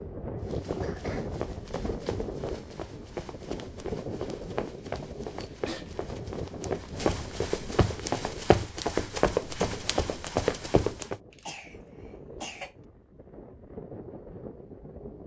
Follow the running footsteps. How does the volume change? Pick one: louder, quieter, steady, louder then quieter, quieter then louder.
louder.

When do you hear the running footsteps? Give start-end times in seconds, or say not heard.
0.4-11.2.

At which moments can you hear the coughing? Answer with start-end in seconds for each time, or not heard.
0.8-1.4, 5.3-6.0, 11.3-12.8.